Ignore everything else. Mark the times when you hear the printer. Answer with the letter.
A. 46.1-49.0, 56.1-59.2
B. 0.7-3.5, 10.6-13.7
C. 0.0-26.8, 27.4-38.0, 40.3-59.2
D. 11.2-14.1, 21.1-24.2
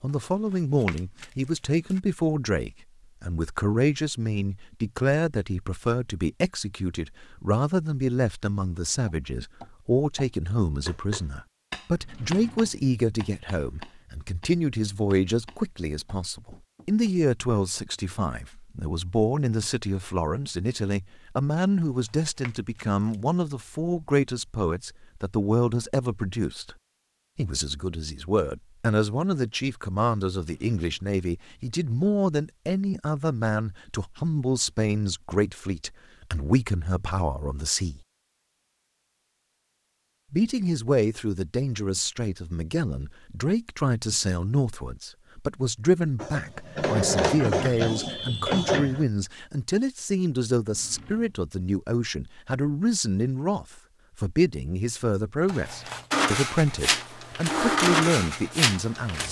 A.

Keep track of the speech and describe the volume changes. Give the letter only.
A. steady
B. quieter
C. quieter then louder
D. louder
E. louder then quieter
A.